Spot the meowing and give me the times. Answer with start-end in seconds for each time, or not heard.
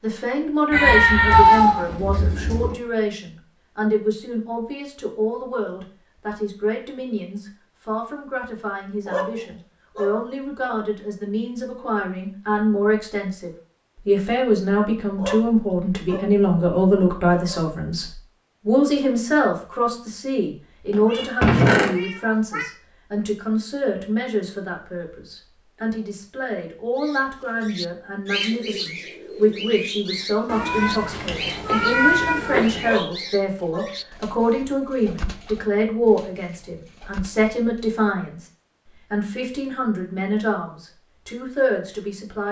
0.7-2.8, 20.9-22.6, 30.4-32.9.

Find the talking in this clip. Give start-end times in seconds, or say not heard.
0.0-38.5, 39.1-42.4.